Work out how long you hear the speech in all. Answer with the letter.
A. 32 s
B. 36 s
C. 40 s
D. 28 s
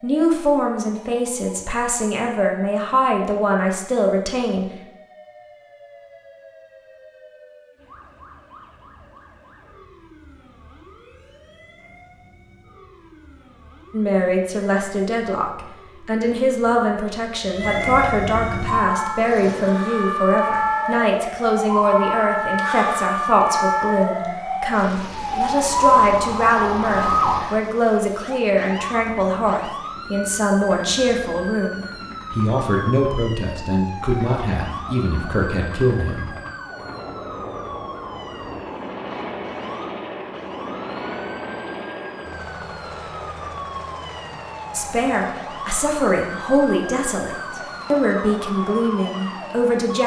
A.